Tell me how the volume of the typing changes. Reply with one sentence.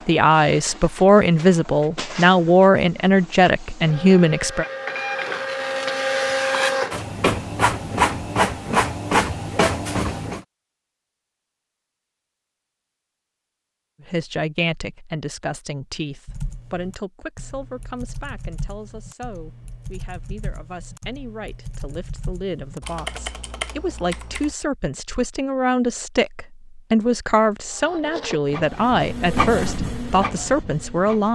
The loudness of the typing goes up.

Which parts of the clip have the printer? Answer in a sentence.
You can hear the printer from 0.0 to 10.4 s and from 27.6 to 31.2 s.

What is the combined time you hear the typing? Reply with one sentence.
The typing can be heard for 8 seconds in total.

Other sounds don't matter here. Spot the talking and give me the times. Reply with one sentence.
The talking can be heard from 0.1 to 4.7 s and from 14.1 to 31.2 s.